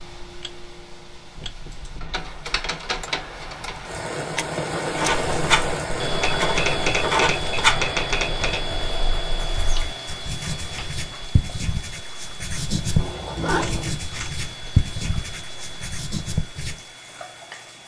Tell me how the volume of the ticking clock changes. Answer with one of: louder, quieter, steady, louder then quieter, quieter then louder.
louder then quieter.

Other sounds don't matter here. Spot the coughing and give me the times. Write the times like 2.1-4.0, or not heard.
not heard.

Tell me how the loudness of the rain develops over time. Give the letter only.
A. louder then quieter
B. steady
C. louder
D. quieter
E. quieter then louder
A.